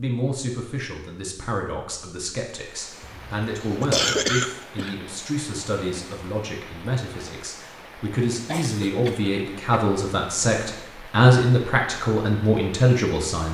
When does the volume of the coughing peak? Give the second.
4 s.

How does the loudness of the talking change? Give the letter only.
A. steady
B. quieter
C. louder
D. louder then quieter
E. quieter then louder
C.